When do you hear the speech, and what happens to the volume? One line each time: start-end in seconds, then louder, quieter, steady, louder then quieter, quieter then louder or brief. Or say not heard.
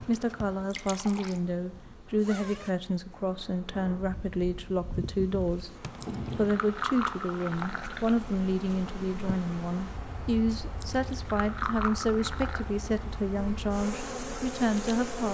0.0-15.3 steady.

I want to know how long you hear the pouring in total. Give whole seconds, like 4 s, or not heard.
5 s.